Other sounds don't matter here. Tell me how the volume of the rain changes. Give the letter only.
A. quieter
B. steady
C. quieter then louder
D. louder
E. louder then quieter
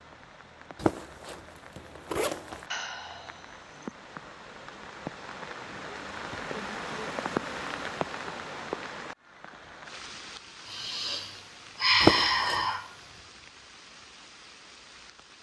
E.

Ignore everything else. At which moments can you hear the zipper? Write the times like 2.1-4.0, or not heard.
0.8-2.6, 12.0-12.7.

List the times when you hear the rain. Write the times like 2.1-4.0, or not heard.
0.0-15.3.